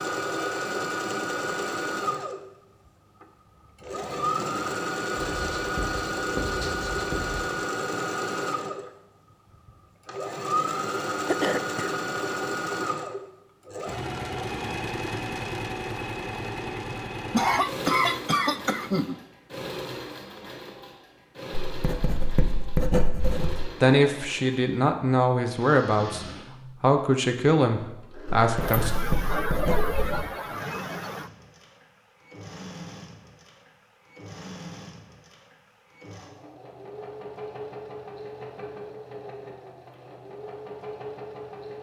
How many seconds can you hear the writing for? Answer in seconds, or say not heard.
6 s.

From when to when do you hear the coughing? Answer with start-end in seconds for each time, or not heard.
11.2-11.9, 16.9-19.2, 28.6-31.3.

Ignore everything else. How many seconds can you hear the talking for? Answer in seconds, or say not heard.
5 s.